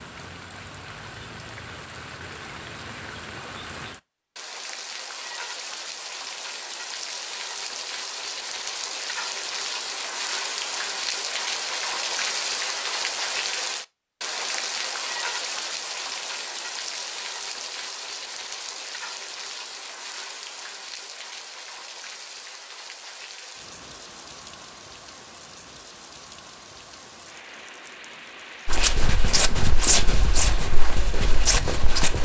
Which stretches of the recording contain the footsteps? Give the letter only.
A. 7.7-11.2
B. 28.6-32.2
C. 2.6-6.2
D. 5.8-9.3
B.